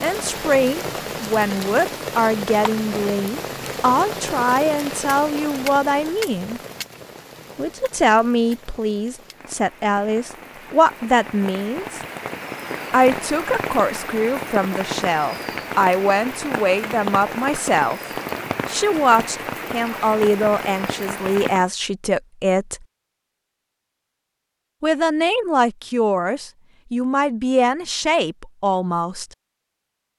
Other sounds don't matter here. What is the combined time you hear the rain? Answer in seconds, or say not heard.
22 s.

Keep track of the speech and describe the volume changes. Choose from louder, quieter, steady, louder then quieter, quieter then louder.
steady.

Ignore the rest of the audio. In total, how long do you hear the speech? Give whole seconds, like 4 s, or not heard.
25 s.